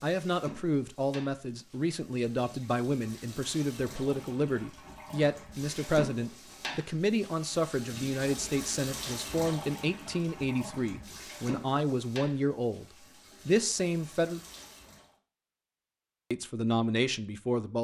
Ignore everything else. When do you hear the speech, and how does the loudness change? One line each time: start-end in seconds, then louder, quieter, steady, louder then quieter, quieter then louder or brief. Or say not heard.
0.0-12.8 steady
13.4-14.4 brief
16.3-17.8 brief.